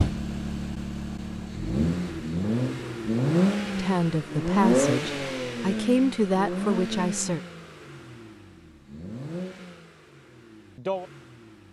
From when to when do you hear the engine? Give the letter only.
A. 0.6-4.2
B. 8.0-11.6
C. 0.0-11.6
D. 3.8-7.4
C.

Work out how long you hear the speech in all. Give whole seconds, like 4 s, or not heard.
4 s.